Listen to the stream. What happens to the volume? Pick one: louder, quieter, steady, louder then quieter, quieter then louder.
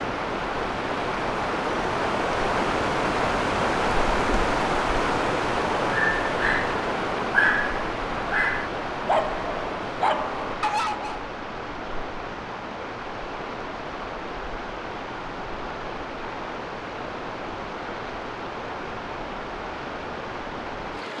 quieter.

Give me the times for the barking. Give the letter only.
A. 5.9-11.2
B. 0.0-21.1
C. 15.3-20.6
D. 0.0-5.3
A.